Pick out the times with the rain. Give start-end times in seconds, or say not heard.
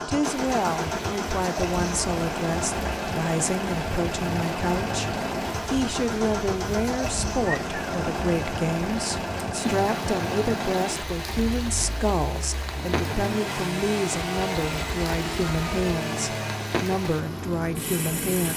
0.2-18.5.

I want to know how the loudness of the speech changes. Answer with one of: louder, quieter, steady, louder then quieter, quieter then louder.
steady.